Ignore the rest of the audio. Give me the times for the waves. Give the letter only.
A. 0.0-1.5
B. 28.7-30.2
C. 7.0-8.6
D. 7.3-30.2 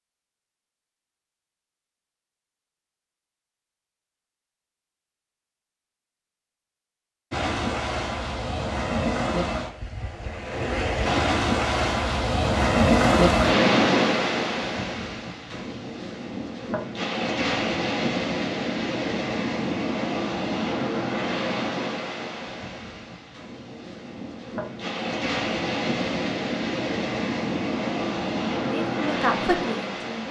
D.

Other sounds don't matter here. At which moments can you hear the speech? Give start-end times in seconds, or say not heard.
28.7-30.2.